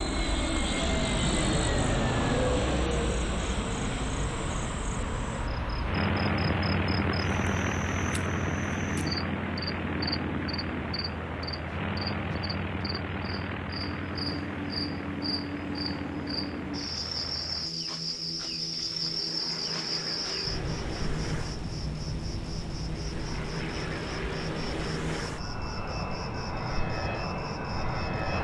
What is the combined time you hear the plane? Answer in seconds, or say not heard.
28 s.